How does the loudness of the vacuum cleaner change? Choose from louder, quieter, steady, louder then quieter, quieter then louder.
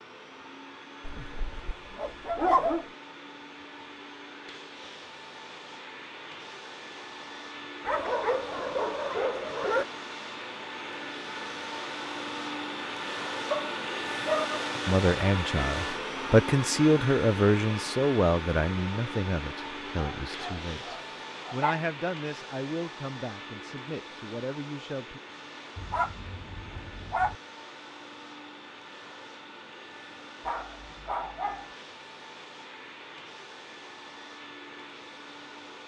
louder then quieter.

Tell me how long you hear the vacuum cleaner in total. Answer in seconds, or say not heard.
36 s.